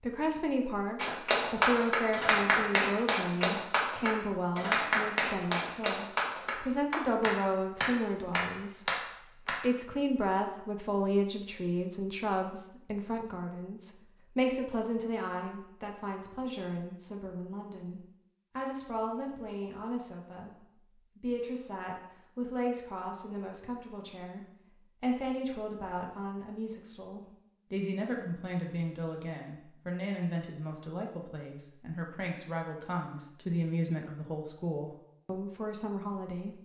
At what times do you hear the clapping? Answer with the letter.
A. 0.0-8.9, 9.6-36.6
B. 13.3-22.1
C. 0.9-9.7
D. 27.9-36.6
C.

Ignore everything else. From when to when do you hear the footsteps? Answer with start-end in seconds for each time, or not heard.
not heard.